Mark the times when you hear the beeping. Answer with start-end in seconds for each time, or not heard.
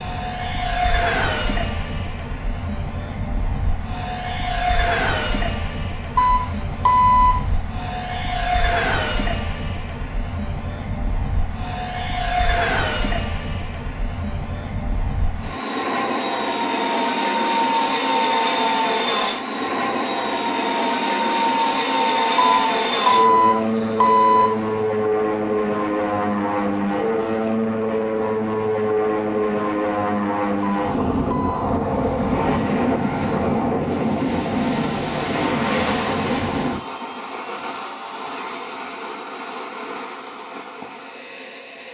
6.2-7.4, 22.4-24.6, 30.6-31.8.